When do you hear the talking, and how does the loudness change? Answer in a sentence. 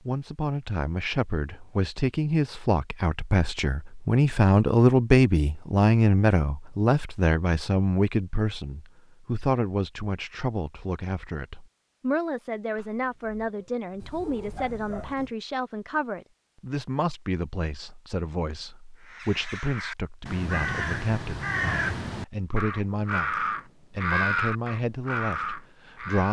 The talking can be heard from 0.0 to 26.2 s, getting quieter.